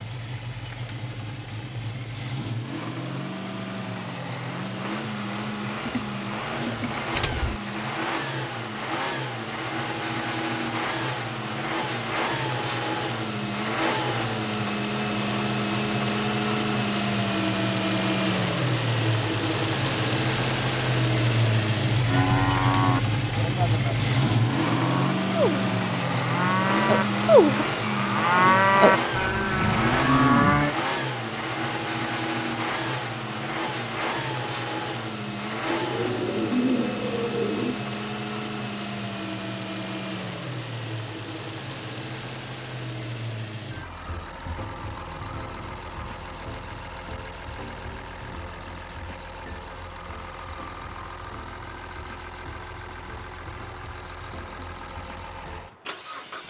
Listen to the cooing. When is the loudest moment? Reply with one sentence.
The loudest moment of the cooing is at 37 seconds.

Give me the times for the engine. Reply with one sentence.
The engine can be heard from 0.0 to 56.4 s.